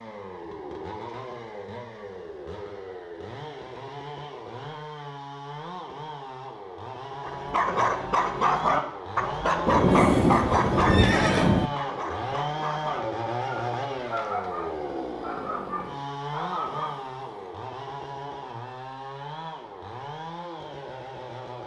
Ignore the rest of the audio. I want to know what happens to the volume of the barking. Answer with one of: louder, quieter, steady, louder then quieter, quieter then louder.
quieter.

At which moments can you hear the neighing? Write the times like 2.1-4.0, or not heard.
9.8-11.5.